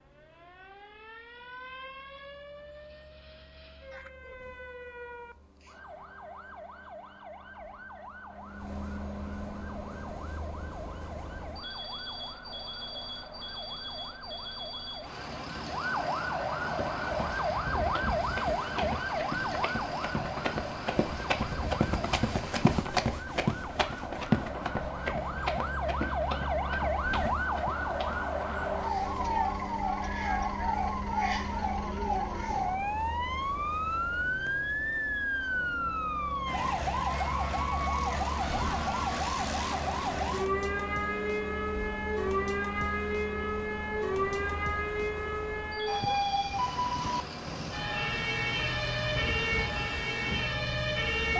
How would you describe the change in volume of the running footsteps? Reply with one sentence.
The loudness of the running footsteps goes up, then down.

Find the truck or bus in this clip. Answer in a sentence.
The truck or bus can be heard from 0.0 to 51.3 s.